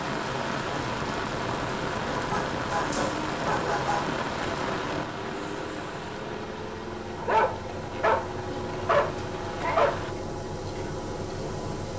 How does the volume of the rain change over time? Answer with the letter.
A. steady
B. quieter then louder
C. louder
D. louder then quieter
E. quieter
E.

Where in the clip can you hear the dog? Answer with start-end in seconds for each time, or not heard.
2.1-4.2, 7.2-10.0.